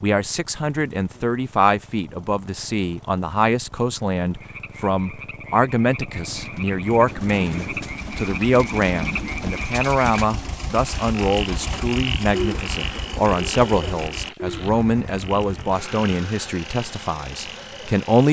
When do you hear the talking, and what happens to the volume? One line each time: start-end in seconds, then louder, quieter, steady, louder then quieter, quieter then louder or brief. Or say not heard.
0.0-18.2 steady.